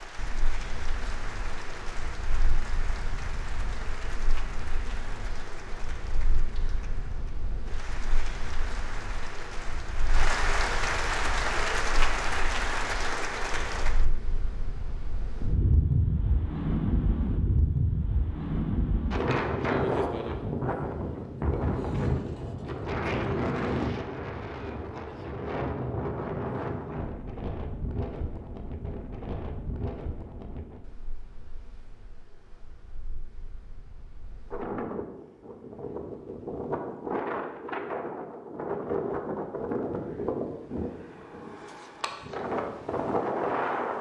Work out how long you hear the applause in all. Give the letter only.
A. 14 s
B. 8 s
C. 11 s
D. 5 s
A.